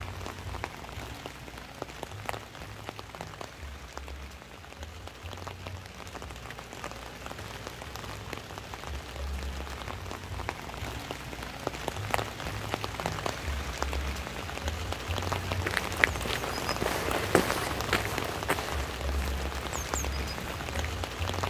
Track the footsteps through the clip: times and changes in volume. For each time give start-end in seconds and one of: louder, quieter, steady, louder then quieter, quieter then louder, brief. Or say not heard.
15.2-21.1 quieter.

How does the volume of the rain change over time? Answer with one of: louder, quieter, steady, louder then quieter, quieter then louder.
louder.